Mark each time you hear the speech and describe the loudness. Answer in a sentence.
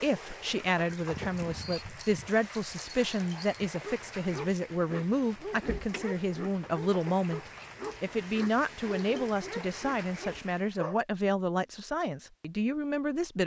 The speech can be heard from 0.0 to 13.4 s, at a steady volume.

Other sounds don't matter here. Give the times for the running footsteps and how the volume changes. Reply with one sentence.
The running footsteps can't be heard in this clip.